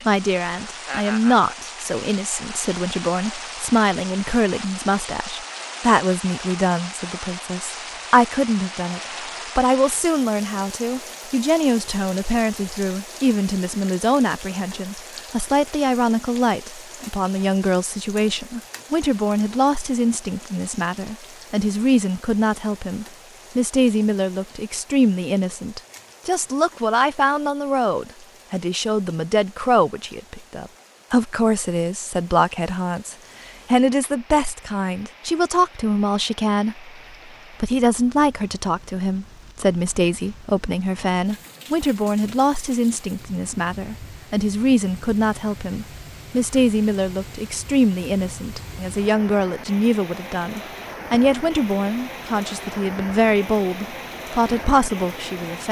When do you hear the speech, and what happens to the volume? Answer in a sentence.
You can hear the speech from 0.1 to 36.9 s, at a steady volume; and from 37.6 to 55.6 s, at a steady volume.